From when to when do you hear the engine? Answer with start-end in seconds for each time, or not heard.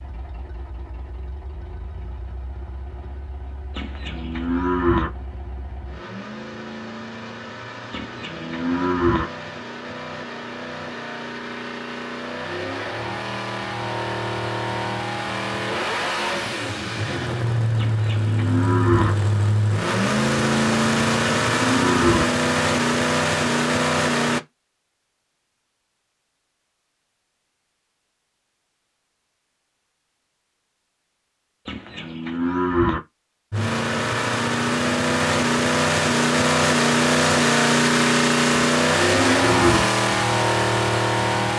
0.0-24.4, 33.5-41.5.